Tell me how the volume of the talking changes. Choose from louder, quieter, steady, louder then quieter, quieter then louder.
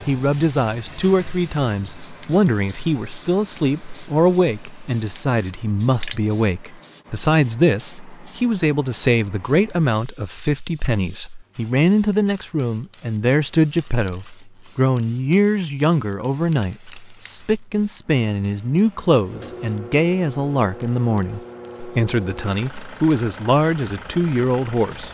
steady.